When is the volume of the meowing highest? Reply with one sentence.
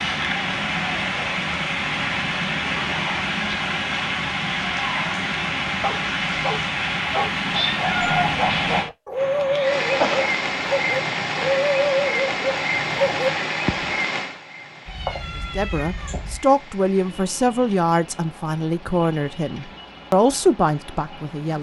The volume of the meowing peaks at 8 seconds.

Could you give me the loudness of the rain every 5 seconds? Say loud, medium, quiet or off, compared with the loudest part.
loud, loud, loud, quiet, quiet.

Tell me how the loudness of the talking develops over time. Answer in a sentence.
The volume of the talking goes down, then up.